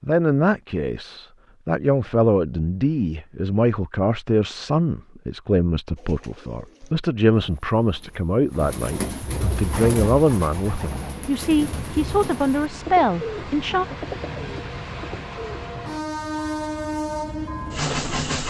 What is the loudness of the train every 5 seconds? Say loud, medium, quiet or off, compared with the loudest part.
off, off, medium, loud.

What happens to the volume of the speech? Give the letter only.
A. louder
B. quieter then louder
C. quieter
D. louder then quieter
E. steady
E.